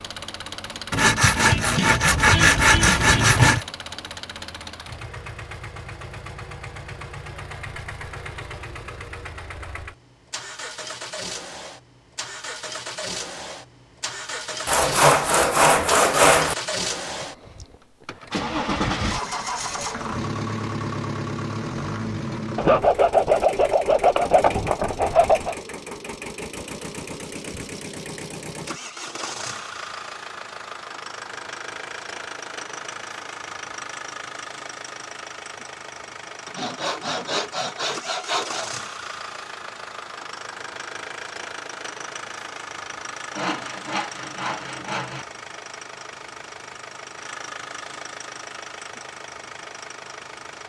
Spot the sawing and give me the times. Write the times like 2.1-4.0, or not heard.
0.9-3.6, 14.7-16.6, 22.6-25.6, 36.5-38.7, 43.3-45.2.